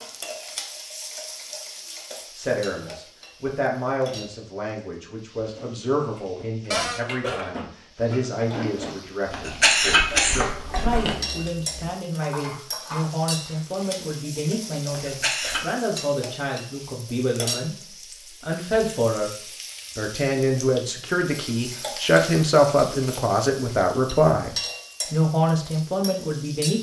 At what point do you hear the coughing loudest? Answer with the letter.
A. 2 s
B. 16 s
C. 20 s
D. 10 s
D.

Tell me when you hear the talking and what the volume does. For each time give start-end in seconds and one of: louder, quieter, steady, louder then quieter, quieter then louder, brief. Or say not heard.
2.4-26.7 louder.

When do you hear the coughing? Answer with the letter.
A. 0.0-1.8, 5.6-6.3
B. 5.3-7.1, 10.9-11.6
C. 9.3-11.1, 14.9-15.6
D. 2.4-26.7
C.